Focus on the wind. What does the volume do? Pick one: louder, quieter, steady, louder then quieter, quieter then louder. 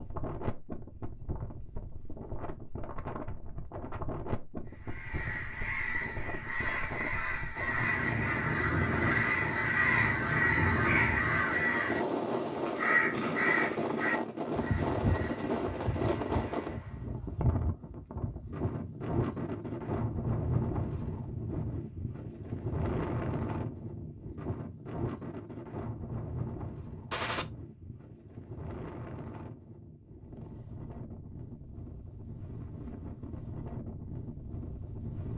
louder then quieter.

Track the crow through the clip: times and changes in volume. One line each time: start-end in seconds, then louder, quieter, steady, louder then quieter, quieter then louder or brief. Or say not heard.
4.8-17.1 louder then quieter.